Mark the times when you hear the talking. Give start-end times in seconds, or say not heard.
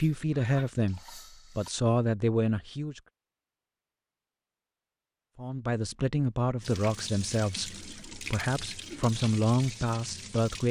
0.0-3.0, 5.3-10.6.